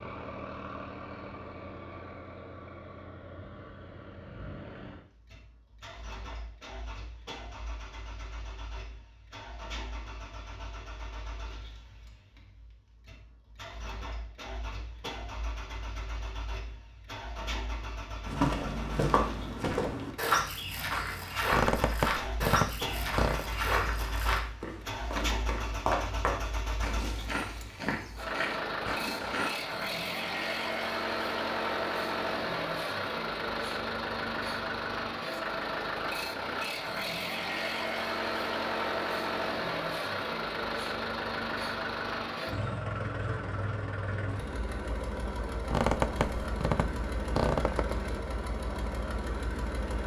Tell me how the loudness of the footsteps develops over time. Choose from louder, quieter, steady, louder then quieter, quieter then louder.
quieter.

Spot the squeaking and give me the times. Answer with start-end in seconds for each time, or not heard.
21.4-23.5, 45.6-48.0.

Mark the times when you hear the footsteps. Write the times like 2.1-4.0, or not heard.
18.2-29.6.